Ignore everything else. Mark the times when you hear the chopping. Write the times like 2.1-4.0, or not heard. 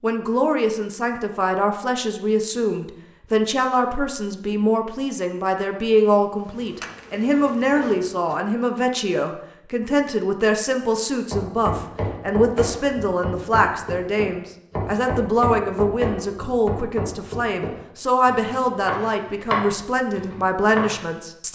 11.3-21.1.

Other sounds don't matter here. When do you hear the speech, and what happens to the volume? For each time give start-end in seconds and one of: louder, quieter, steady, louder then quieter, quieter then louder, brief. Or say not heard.
0.0-21.5 steady.